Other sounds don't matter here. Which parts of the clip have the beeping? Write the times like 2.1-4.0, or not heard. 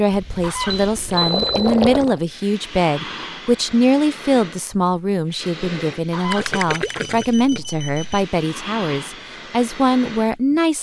0.7-1.7, 6.4-8.2.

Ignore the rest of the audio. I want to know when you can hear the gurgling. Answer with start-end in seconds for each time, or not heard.
0.1-2.2, 6.3-7.6.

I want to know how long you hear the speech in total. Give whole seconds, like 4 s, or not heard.
11 s.